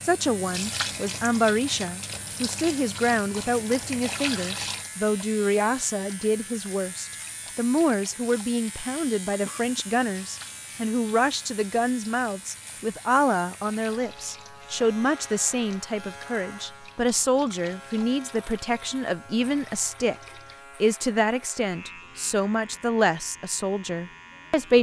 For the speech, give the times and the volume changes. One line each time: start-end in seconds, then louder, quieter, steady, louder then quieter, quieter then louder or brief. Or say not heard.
0.0-24.7 steady.